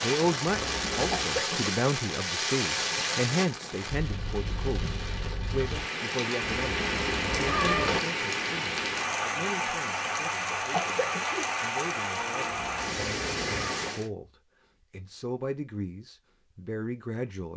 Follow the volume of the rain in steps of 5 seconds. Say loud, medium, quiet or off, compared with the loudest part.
loud, loud, loud, off.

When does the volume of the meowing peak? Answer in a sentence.
The volume of the meowing peaks at 8 seconds.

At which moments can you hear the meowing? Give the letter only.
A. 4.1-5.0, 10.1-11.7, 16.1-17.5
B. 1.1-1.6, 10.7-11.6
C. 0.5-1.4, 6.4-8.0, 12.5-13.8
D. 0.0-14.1
C.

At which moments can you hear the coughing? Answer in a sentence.
The coughing can be heard from 1.1 to 1.6 s and from 10.7 to 11.6 s.